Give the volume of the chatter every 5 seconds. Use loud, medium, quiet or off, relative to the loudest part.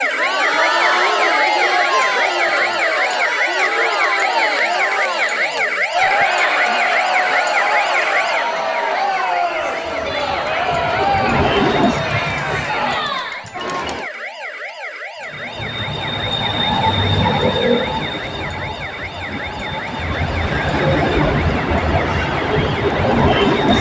loud, loud, loud, off, off.